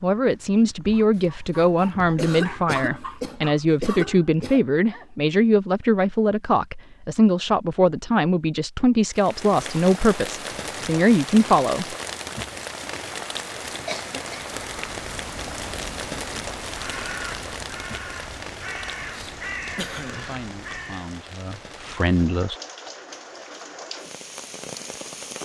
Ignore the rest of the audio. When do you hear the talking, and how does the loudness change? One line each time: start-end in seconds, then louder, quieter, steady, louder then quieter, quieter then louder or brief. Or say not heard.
0.0-11.9 steady
20.1-22.6 brief.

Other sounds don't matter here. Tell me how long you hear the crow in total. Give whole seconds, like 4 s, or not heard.
7 s.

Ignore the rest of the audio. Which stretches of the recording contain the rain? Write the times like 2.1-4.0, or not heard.
9.1-25.4.